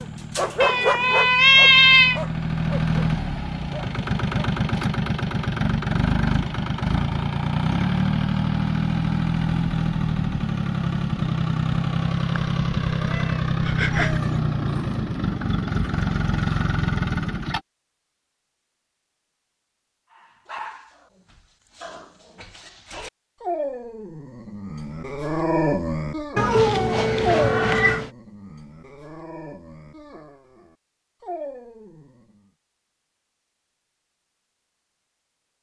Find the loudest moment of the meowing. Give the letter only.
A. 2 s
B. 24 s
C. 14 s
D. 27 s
A.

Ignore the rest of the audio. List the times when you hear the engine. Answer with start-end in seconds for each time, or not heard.
0.0-17.6.